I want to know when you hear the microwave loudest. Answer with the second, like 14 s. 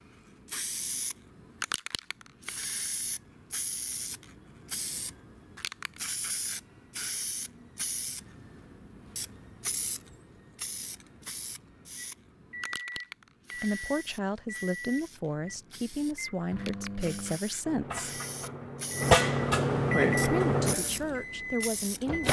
20 s.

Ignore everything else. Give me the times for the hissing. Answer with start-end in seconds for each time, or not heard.
0.0-22.2.